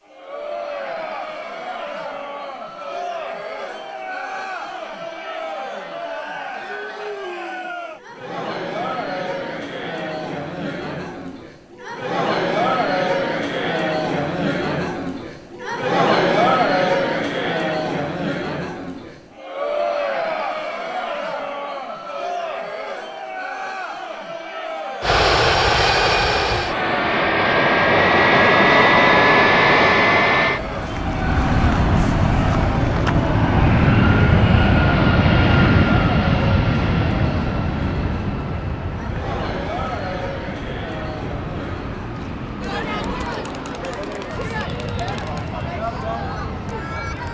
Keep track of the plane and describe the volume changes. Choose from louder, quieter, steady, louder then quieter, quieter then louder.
quieter.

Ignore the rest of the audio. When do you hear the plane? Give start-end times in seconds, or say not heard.
25.0-47.2.